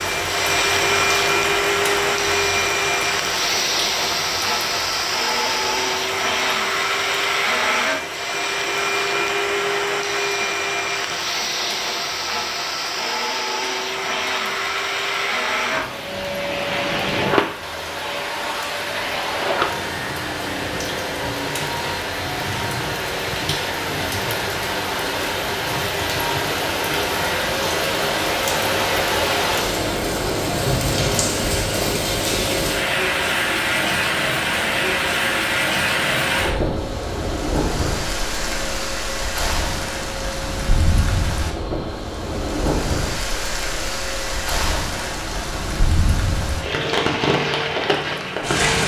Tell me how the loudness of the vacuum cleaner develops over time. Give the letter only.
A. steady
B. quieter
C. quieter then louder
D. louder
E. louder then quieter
B.